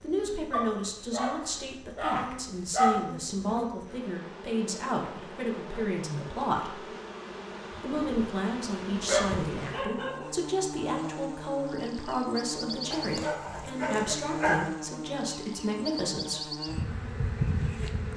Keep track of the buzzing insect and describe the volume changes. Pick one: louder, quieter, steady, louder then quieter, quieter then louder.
louder.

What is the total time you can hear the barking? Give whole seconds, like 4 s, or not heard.
6 s.